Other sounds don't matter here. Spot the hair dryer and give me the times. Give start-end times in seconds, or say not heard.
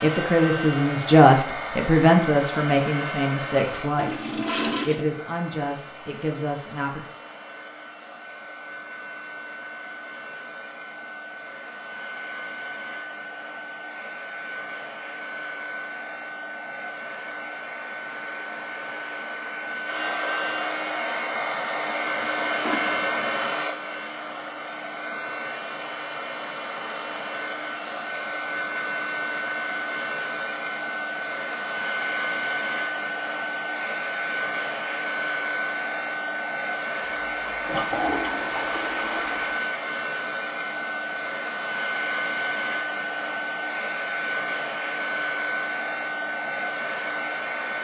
0.0-47.7.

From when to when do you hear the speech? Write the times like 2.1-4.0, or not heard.
0.0-7.0.